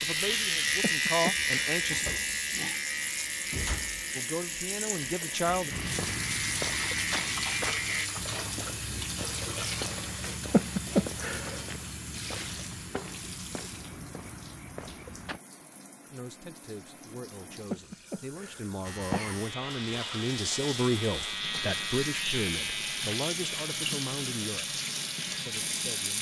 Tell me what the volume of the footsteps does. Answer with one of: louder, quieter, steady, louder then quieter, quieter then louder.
quieter.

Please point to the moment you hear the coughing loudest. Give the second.
11 s.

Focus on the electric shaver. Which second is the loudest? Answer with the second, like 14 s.
1 s.